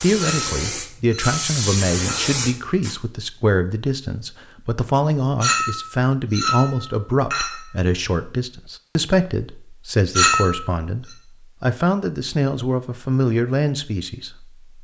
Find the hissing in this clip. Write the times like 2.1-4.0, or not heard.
0.0-3.0.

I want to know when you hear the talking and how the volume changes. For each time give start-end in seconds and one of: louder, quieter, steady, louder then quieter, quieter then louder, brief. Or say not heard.
0.0-14.6 steady.